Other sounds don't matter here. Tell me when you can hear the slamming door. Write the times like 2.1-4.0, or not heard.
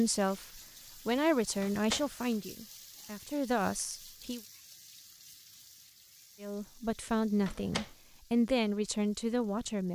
1.6-2.4, 7.4-7.9.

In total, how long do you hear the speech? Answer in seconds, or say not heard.
8 s.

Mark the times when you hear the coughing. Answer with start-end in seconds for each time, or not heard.
not heard.